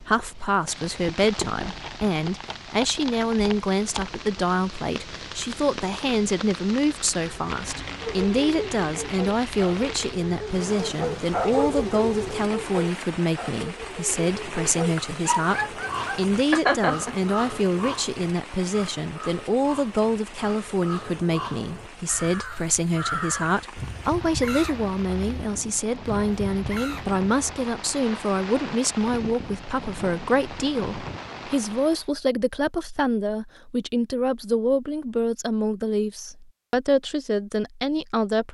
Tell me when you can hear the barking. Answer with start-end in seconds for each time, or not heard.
8.0-17.1.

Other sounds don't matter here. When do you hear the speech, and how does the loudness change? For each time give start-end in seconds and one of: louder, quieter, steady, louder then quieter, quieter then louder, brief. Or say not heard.
0.0-38.4 steady.